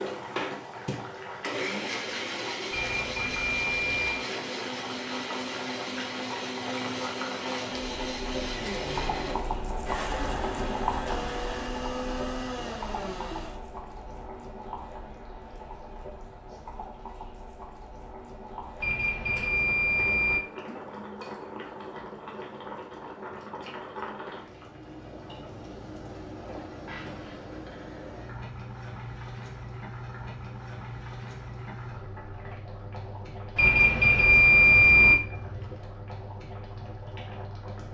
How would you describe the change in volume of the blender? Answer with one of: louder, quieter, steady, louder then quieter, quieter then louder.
steady.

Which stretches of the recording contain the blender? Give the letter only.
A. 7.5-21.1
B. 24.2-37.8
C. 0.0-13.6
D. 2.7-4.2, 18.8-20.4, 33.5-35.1
C.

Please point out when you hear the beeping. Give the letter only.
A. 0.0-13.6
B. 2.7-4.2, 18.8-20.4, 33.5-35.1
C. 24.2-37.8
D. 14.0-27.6
B.